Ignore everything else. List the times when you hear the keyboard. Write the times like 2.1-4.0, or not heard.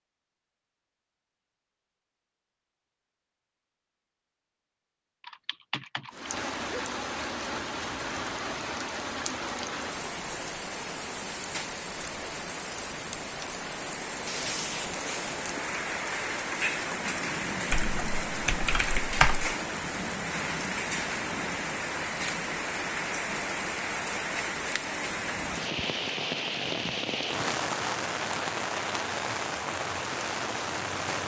5.2-6.8, 17.7-19.5.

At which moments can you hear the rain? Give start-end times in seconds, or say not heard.
6.1-31.2.